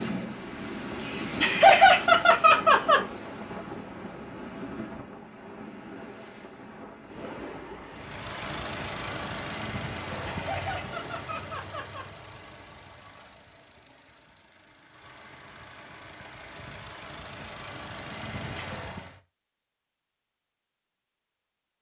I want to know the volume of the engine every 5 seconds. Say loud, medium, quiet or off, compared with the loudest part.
off, loud, medium, medium, off.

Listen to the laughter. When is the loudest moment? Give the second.
2 s.